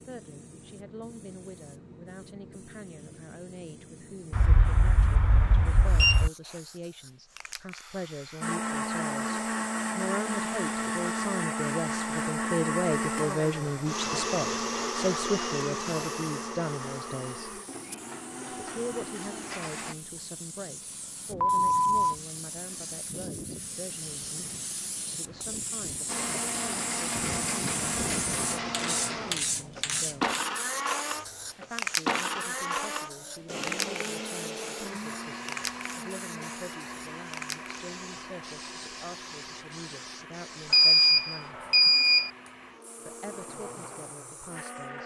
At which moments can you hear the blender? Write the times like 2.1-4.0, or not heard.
8.4-19.9, 26.1-45.0.